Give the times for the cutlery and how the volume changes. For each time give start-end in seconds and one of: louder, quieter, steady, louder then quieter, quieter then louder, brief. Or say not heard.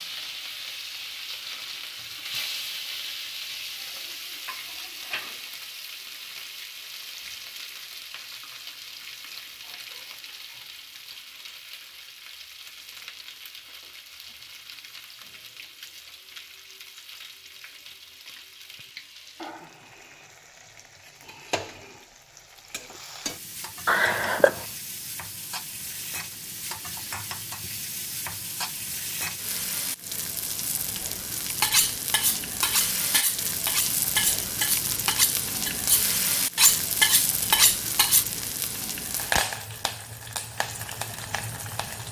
31.5-38.2 louder.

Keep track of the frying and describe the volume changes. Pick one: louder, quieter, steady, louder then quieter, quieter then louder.
quieter then louder.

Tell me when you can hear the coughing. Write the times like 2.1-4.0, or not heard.
23.9-24.6.